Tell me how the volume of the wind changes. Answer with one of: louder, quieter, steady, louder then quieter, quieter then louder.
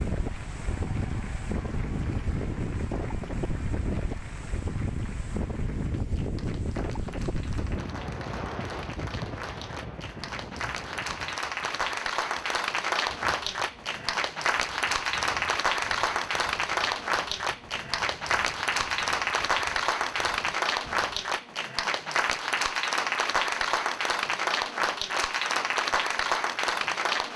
quieter.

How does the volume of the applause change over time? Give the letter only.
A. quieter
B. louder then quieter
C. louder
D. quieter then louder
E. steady
C.